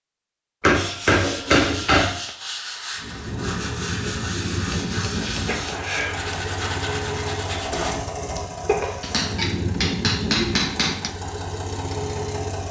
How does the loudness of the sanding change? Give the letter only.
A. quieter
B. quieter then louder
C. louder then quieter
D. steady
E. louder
D.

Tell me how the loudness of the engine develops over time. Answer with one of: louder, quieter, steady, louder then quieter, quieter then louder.
steady.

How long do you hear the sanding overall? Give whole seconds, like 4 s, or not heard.
7 s.